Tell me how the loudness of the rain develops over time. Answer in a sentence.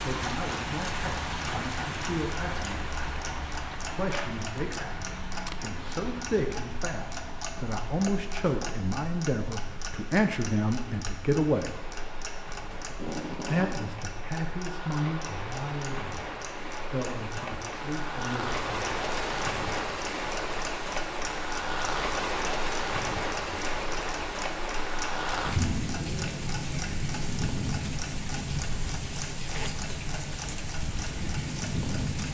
The volume of the rain goes down, then up.